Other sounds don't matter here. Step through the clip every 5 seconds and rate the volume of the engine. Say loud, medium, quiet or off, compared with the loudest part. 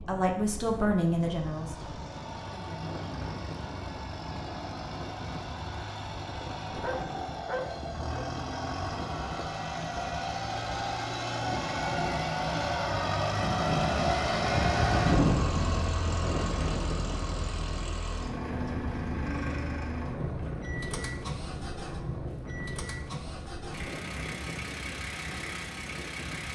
quiet, medium, loud, medium, medium, medium.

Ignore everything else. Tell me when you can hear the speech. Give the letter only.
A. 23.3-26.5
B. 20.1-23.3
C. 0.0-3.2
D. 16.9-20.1
C.